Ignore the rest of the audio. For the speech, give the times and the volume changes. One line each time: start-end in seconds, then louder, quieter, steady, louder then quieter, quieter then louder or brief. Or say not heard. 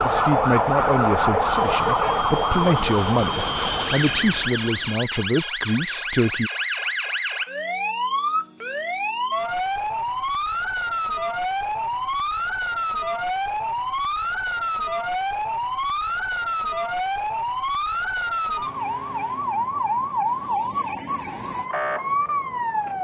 0.0-6.5 steady.